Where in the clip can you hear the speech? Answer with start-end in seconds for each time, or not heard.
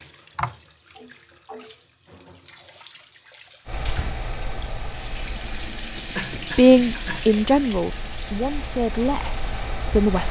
6.5-10.2.